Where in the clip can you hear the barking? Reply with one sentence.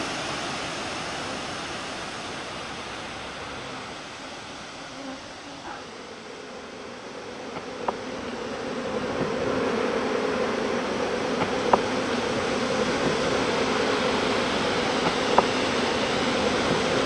You can't hear the barking here.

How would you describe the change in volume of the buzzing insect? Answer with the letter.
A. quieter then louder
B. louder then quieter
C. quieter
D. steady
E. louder
E.